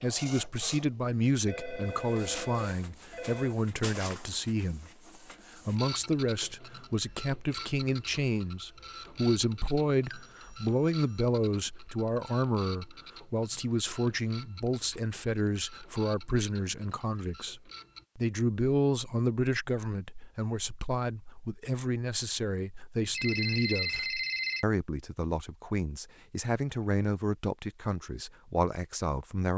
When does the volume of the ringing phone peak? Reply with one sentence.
The loudest moment of the ringing phone is at 24 seconds.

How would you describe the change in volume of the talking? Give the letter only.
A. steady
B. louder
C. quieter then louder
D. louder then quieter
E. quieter
A.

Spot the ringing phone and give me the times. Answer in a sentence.
The ringing phone can be heard from 1.4 to 3.5 s, from 10.1 to 11.3 s and from 23.1 to 24.6 s.